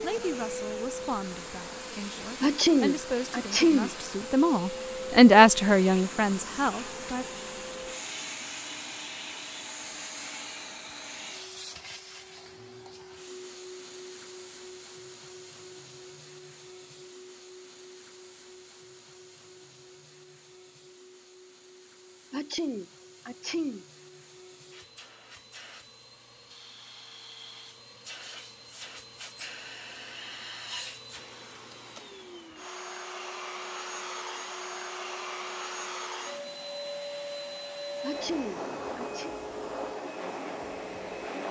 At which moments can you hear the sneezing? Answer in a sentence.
You can hear the sneezing from 2.4 to 3.9 s, from 22.3 to 23.9 s and from 38.0 to 39.4 s.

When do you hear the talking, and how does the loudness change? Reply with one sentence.
You can hear the talking from 0.0 to 7.2 s, getting louder then quieter.